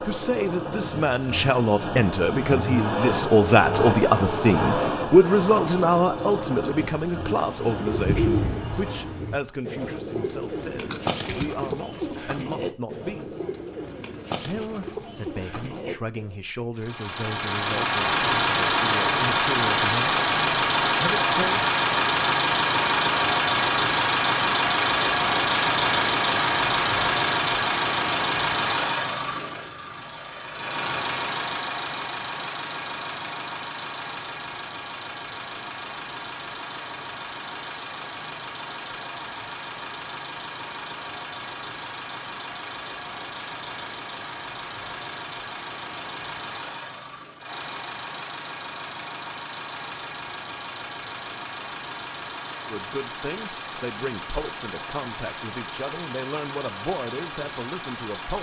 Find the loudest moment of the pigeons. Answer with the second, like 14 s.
8 s.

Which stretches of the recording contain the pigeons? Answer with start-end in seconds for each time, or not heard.
7.2-16.4.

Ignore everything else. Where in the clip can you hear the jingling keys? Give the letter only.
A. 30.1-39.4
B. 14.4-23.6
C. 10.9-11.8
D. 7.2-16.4
C.